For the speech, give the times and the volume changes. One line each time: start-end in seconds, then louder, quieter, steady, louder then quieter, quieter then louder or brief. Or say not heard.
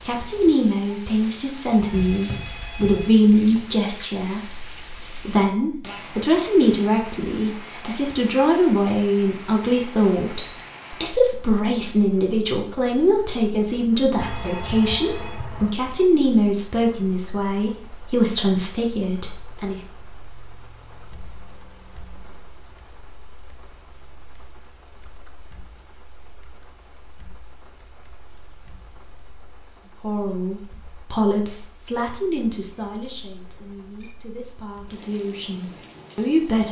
0.1-19.8 steady
30.0-36.6 quieter then louder.